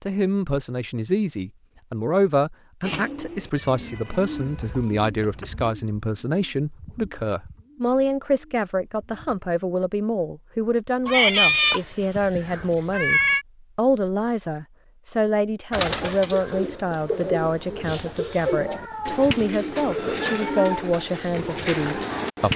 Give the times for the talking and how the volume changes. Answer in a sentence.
You can hear the talking from 0.0 to 22.5 s, at a steady volume.